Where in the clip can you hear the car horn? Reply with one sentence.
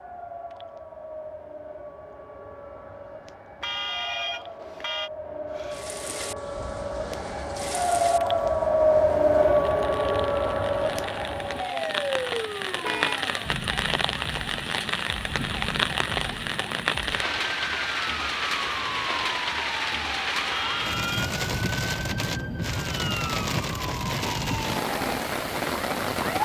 The car horn can be heard from 3.6 to 5.1 s, from 12.8 to 13.3 s and from 20.6 to 21.3 s.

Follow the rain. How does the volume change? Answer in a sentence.
The loudness of the rain goes up.